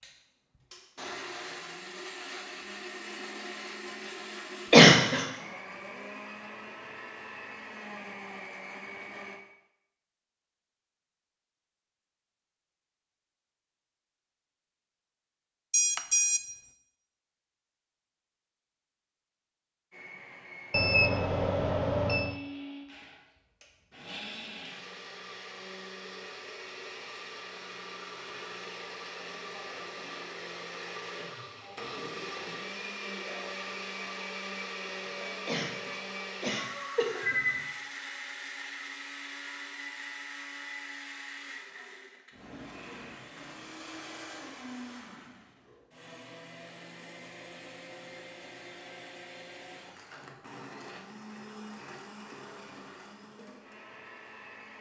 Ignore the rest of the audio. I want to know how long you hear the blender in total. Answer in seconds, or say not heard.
44 s.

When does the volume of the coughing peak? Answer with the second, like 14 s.
5 s.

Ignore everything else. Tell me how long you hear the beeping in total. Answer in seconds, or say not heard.
3 s.